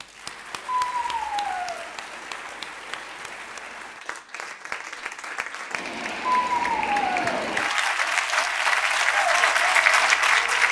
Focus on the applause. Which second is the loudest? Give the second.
10 s.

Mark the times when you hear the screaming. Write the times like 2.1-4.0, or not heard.
0.8-1.8, 6.5-7.5.